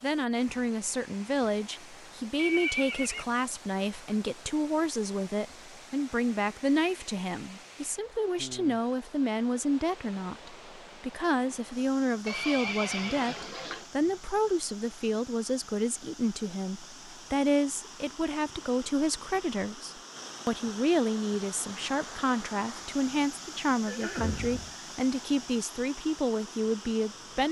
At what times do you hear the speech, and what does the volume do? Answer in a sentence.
You can hear the speech from 0.0 to 27.4 s, at a steady volume.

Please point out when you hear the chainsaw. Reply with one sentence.
The chainsaw can't be heard in this clip.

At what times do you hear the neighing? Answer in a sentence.
The neighing can be heard from 2.4 to 3.2 s, from 12.2 to 13.9 s and from 23.9 to 24.8 s.